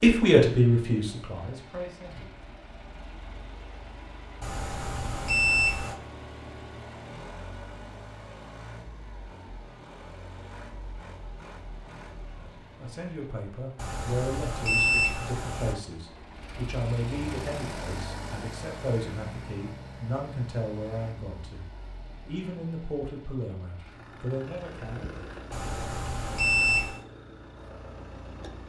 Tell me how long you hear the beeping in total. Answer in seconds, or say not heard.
5 s.